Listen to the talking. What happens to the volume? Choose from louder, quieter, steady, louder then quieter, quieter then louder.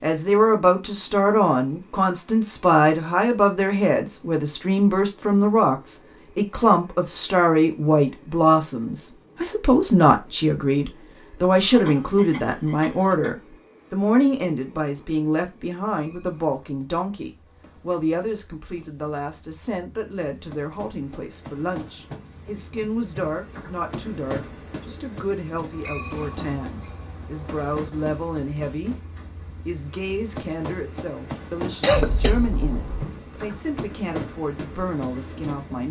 quieter.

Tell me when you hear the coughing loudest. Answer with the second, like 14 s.
32 s.